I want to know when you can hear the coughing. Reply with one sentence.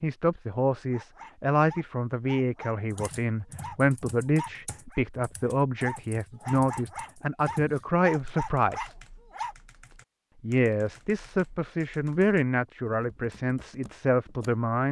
You can't hear the coughing here.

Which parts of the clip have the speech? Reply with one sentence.
The speech can be heard from 0.0 to 8.9 s and from 10.4 to 14.8 s.